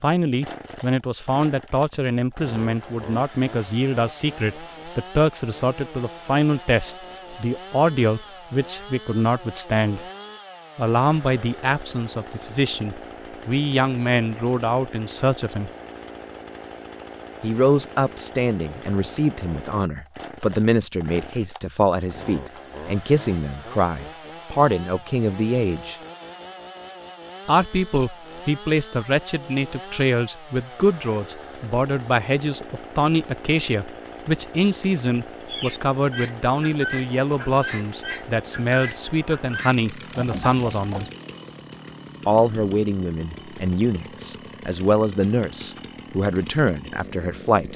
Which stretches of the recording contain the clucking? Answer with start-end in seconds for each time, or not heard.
35.5-41.1.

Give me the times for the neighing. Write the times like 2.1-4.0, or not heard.
not heard.